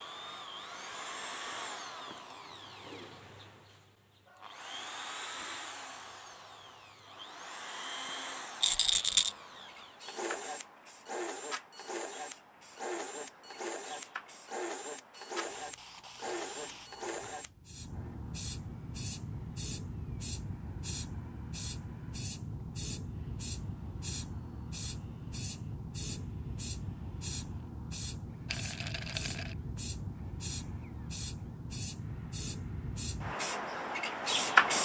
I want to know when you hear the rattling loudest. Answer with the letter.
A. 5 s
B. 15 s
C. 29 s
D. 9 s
D.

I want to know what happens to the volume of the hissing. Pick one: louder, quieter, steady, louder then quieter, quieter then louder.
louder.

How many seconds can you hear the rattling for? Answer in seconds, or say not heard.
2 s.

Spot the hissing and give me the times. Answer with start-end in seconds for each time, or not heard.
9.1-34.8.